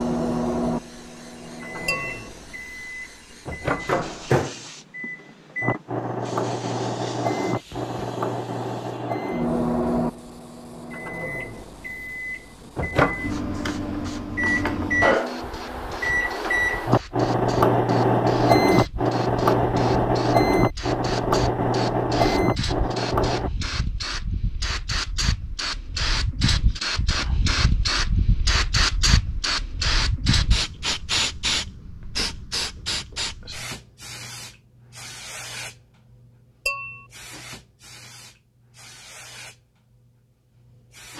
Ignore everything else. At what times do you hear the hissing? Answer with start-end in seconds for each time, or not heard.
0.0-41.1.